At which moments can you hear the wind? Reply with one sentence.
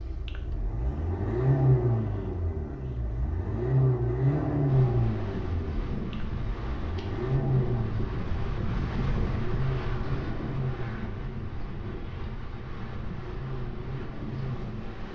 The wind can be heard from 4.7 to 15.1 s.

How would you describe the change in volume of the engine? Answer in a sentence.
The volume of the engine goes down.